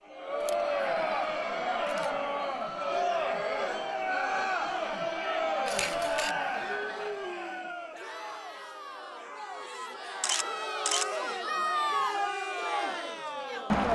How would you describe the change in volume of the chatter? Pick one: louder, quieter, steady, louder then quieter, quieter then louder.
quieter then louder.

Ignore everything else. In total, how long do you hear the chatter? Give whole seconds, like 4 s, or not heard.
14 s.